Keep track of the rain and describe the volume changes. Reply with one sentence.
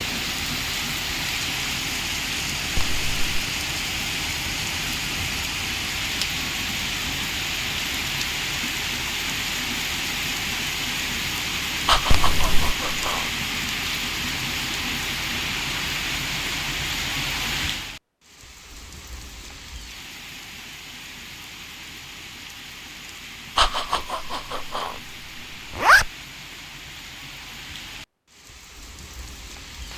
The loudness of the rain goes down.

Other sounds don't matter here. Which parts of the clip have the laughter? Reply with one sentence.
You can hear the laughter from 11.8 to 13.3 s and from 23.6 to 25.0 s.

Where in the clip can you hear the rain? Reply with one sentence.
The rain can be heard from 0.0 to 29.9 s.